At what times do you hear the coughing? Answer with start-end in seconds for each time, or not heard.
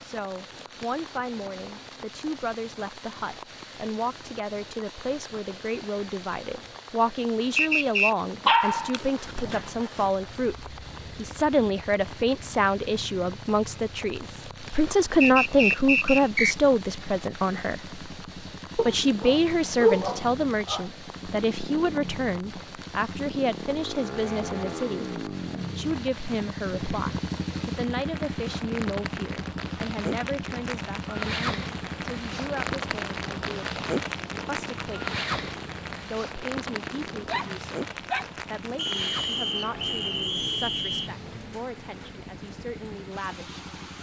not heard.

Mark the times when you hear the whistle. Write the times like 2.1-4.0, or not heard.
7.5-8.1, 15.2-16.6, 38.8-41.1.